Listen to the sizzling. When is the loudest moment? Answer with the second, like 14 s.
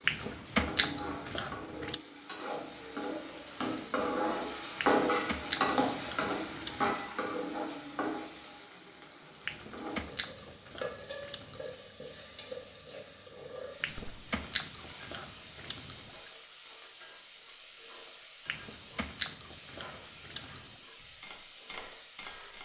5 s.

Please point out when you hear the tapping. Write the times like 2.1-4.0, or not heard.
21.2-22.6.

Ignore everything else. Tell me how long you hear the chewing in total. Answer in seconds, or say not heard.
11 s.